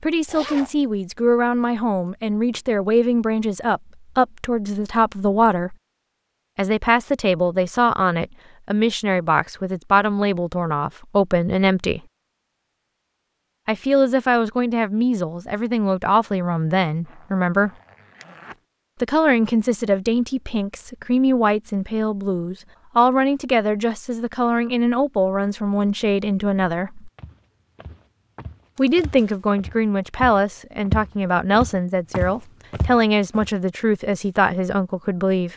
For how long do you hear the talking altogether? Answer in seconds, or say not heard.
30 s.